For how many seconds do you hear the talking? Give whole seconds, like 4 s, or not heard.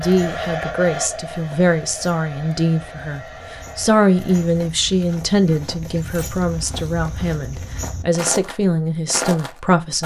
10 s.